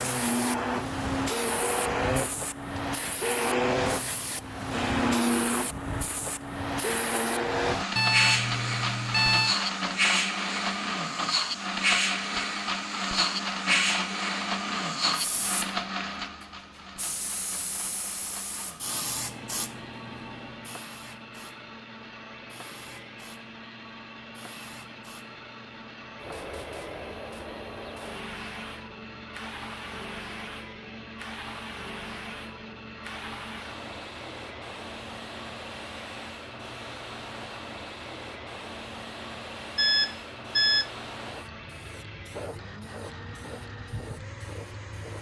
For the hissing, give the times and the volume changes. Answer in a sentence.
You can hear the hissing from 0.0 to 45.1 s, getting quieter.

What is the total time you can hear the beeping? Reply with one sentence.
You can hear the beeping for 3 seconds altogether.